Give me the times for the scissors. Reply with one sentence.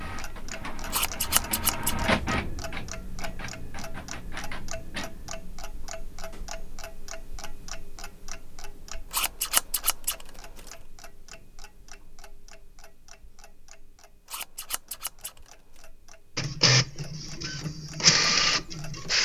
The scissors can be heard from 0.9 to 2.0 s, from 9.1 to 10.2 s and from 14.3 to 15.4 s.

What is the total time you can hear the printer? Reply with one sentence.
The printer can be heard for 8 seconds in total.